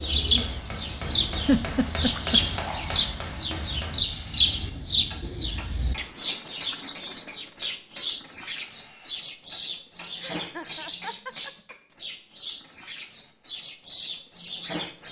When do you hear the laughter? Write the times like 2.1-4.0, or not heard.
1.4-2.5, 10.2-11.8.